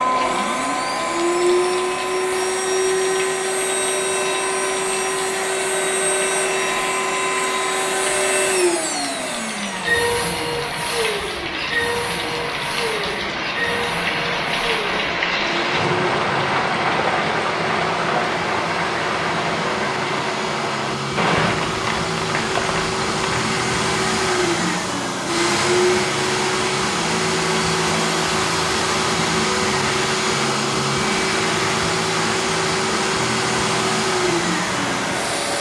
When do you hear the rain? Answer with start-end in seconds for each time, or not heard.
0.0-35.5.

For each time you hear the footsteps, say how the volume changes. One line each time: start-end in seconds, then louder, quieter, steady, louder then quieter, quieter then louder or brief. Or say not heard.
not heard.